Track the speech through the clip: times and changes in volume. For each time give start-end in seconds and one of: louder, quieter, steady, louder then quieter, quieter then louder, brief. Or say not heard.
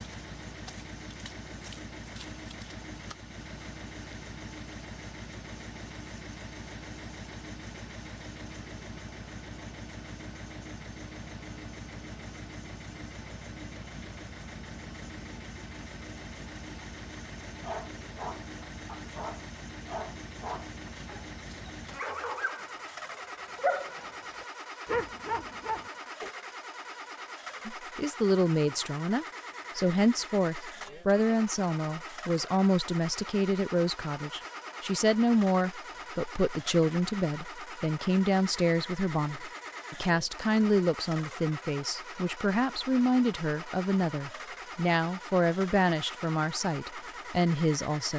27.6-48.1 steady.